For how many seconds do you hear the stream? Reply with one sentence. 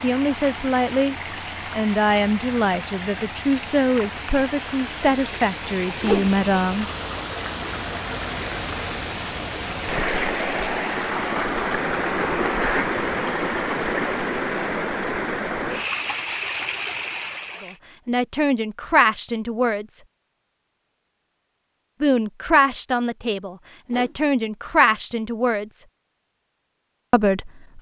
The stream can be heard for 18 seconds in total.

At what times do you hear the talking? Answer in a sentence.
You can hear the talking from 0.0 to 6.8 s, from 17.6 to 20.0 s, from 22.0 to 25.8 s and from 27.1 to 27.7 s.